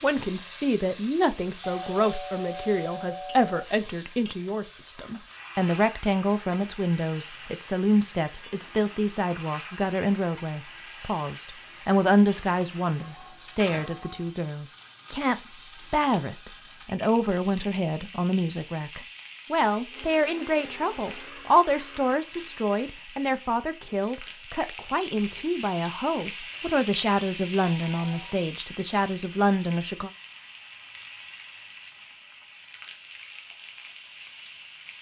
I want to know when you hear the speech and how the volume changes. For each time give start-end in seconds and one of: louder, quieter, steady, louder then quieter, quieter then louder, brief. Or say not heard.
0.0-30.1 steady.